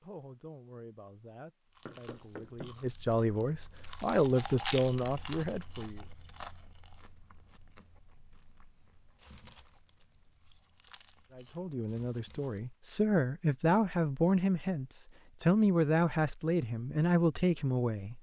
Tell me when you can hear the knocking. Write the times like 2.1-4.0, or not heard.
1.9-2.8.